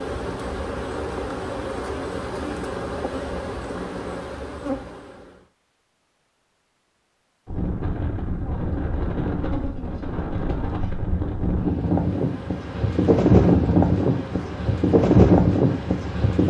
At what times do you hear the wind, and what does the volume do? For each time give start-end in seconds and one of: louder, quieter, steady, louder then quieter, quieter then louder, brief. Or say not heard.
7.5-16.4 louder.